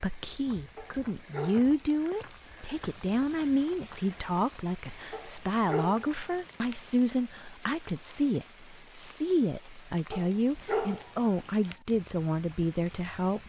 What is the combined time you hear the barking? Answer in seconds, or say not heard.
4 s.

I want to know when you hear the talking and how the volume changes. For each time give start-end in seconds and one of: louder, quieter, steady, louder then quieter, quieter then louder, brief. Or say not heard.
0.0-13.4 steady.